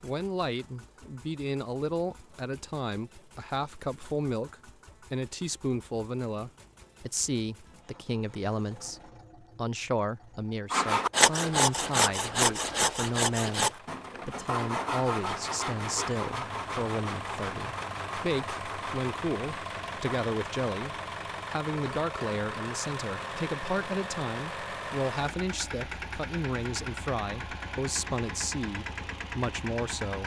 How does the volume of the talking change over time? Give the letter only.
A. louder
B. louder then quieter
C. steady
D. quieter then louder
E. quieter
C.